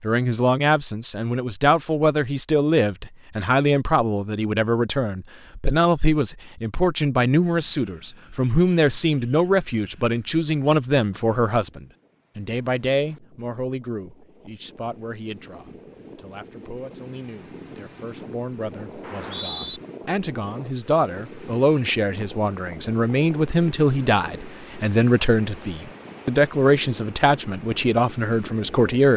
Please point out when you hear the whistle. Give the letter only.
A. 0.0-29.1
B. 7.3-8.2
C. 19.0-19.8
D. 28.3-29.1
C.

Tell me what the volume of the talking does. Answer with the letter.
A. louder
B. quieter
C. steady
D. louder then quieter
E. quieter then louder
E.